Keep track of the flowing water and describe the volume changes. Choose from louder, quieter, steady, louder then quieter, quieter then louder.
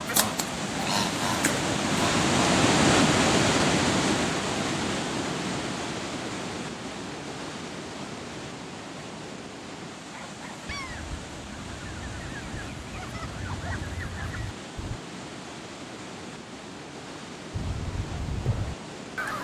quieter.